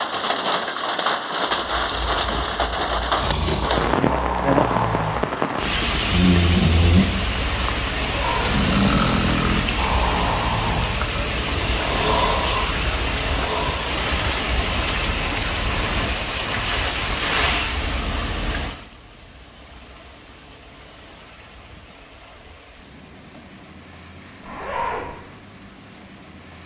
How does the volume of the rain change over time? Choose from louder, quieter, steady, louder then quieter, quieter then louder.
quieter.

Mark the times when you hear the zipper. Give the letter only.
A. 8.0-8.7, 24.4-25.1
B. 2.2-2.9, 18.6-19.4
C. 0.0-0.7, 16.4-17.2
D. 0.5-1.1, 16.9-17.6
A.